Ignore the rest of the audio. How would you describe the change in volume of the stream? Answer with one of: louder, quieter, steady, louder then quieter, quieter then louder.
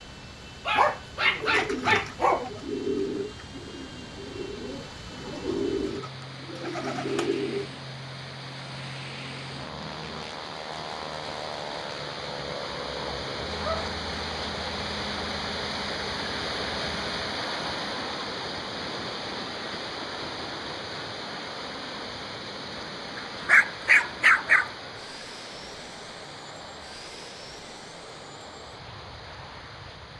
louder then quieter.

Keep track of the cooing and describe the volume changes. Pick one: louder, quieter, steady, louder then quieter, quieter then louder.
quieter then louder.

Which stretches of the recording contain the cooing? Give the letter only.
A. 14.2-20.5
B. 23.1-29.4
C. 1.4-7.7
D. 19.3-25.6
C.